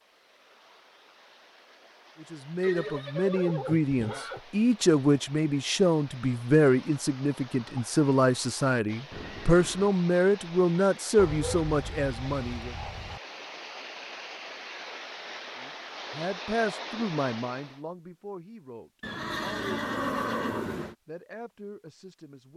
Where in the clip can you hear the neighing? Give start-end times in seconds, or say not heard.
2.6-4.4, 9.1-9.9, 19.0-20.9.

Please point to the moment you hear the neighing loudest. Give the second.
20 s.